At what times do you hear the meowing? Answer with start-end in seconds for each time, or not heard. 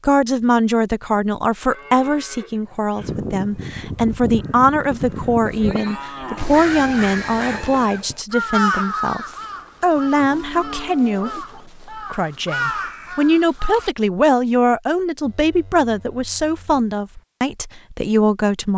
not heard.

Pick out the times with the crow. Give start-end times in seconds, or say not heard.
3.0-13.9.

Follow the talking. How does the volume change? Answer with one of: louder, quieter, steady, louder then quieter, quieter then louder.
steady.